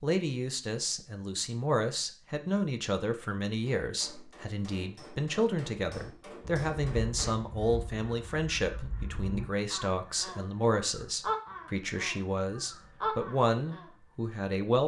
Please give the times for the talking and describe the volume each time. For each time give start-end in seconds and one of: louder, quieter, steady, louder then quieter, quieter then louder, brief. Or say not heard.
0.0-14.8 steady.